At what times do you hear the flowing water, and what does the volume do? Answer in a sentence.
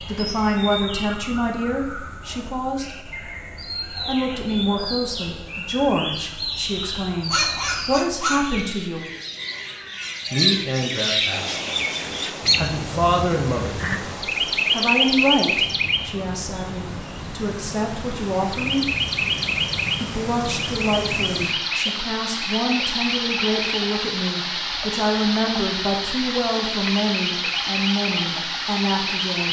You can hear the flowing water from 11.3 to 29.4 s, getting louder.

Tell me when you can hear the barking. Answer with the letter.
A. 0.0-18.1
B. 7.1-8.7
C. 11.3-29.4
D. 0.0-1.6
B.